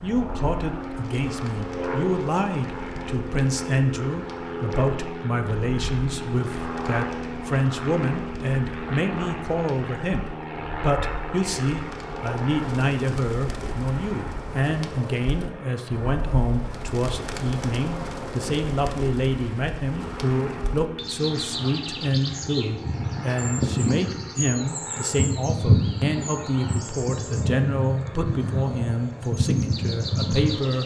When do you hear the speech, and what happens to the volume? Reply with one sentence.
The speech can be heard from 0.0 to 30.8 s, at a steady volume.